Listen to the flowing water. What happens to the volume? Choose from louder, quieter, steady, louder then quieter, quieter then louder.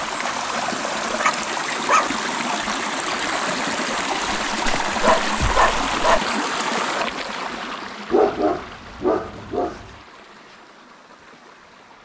quieter.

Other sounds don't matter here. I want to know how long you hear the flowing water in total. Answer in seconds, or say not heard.
12 s.